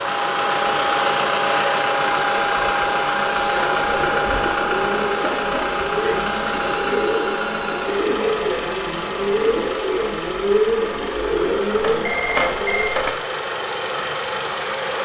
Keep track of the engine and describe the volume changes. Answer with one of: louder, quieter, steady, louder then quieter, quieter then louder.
quieter.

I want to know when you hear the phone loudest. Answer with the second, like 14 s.
12 s.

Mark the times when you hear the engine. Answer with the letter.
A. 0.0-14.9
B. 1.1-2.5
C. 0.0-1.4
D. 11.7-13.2
A.